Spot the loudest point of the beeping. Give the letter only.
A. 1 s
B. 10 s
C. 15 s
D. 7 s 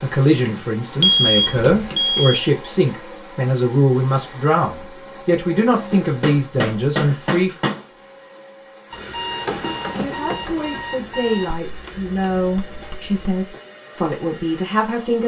A.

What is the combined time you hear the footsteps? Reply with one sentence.
You can't hear the footsteps here.